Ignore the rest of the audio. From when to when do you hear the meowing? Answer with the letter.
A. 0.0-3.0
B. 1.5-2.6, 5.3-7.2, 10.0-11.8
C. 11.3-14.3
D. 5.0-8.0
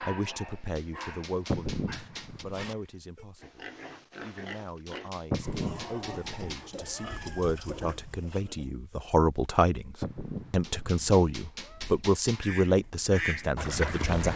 B.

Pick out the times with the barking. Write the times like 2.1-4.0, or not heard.
0.0-3.0.